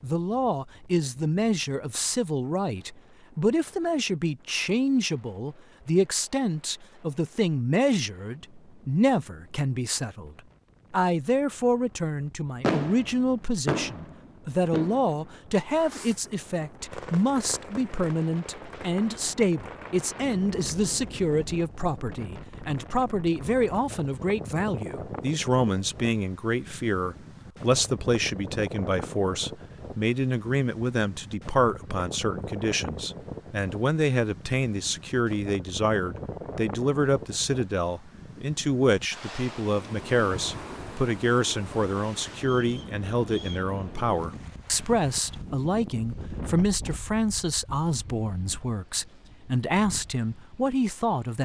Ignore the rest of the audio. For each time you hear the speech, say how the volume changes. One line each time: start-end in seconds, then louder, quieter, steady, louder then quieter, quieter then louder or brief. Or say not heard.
0.0-51.4 steady.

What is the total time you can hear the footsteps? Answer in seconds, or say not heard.
not heard.